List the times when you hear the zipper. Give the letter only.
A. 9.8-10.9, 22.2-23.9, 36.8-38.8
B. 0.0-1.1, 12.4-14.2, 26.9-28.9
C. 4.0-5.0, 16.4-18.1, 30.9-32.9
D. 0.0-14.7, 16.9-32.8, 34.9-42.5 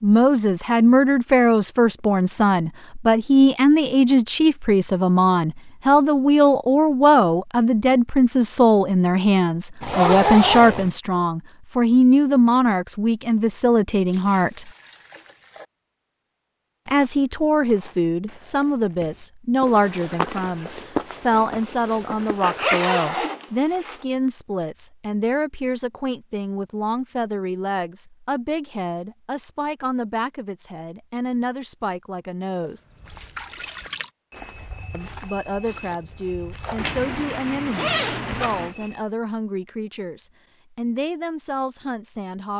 A.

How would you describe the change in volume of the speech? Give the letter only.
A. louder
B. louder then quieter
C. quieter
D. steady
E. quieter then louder
C.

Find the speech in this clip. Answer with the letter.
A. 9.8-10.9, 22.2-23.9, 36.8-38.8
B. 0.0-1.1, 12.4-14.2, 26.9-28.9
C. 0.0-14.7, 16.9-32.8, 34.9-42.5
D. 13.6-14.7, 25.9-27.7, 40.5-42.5
C.